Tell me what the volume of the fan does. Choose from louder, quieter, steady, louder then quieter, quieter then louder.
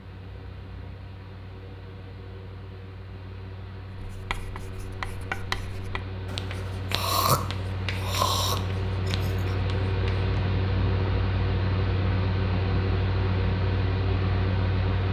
louder.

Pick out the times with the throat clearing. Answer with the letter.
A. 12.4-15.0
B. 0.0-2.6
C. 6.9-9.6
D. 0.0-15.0
C.